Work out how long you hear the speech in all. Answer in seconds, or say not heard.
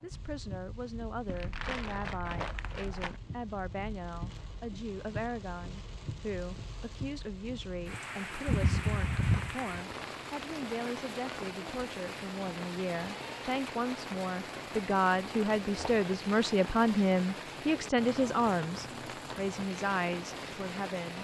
21 s.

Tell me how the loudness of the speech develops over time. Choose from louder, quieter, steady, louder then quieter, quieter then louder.
louder.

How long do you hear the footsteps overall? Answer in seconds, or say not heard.
not heard.